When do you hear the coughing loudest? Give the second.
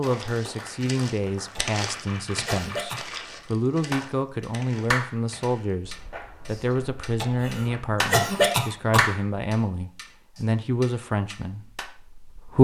8 s.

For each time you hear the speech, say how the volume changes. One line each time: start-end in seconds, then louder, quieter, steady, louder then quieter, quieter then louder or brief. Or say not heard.
0.0-12.5 steady.